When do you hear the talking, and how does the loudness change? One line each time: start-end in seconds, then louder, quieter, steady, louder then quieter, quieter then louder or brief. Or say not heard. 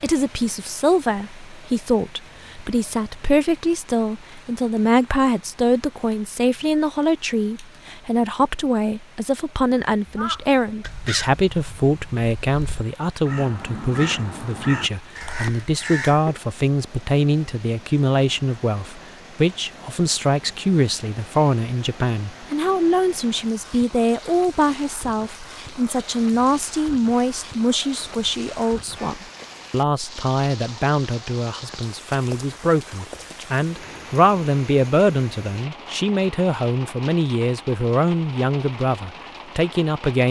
0.0-40.2 steady.